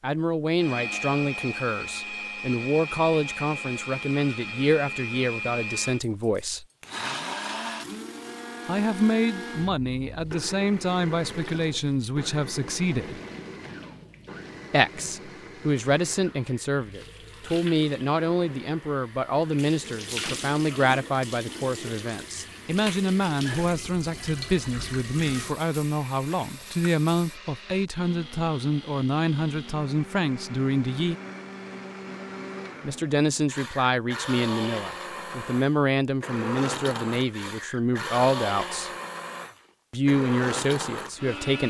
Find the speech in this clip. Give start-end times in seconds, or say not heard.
0.0-6.7, 8.7-13.2, 14.7-31.1, 32.8-38.9, 39.9-41.6.